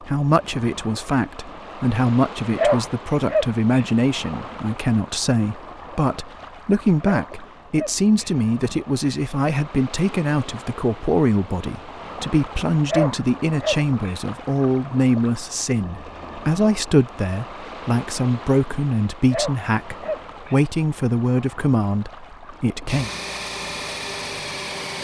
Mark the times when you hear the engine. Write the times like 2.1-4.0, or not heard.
22.9-24.9.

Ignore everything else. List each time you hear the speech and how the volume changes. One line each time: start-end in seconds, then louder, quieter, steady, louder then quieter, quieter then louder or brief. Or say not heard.
0.1-23.1 steady.